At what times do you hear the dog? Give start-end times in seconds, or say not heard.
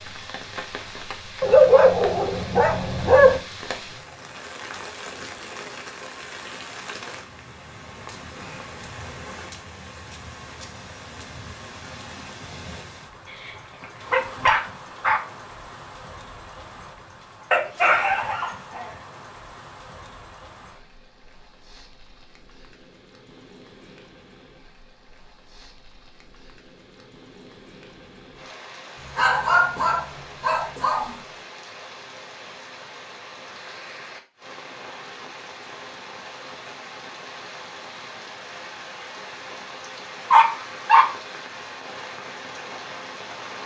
1.4-3.4, 13.4-15.2, 17.5-18.9, 29.1-31.1, 40.3-41.0.